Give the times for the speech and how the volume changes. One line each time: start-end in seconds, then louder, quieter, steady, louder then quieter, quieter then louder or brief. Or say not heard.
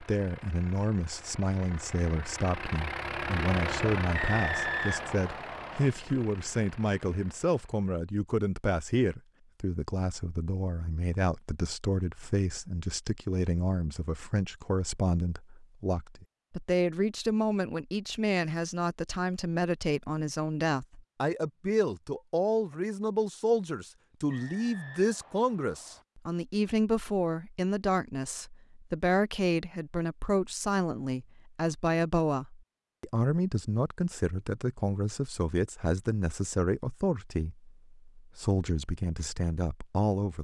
0.0-40.4 steady.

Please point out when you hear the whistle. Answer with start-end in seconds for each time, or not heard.
4.1-5.9, 24.3-26.1.